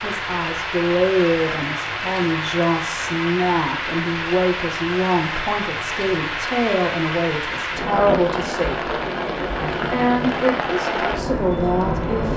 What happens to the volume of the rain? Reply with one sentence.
The volume of the rain stays about the same.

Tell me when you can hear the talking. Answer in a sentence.
The talking can be heard from 0.0 to 8.9 s and from 9.8 to 12.3 s.